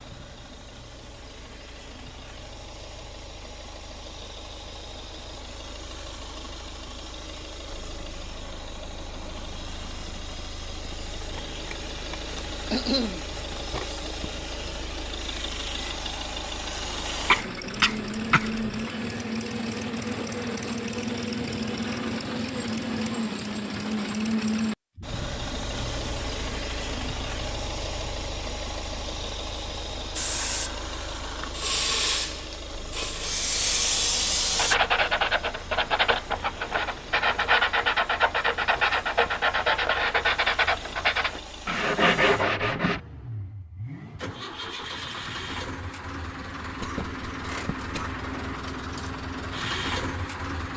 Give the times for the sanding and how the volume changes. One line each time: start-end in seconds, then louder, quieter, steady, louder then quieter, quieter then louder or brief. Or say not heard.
34.5-43.0 steady.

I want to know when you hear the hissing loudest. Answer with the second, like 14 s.
34 s.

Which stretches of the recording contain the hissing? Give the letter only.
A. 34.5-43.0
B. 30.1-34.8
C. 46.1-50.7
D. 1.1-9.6
B.